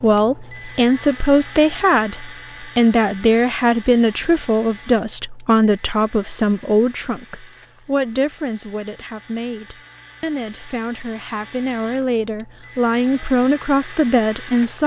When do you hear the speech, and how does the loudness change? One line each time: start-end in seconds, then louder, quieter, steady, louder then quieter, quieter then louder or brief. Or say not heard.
0.0-14.8 quieter then louder.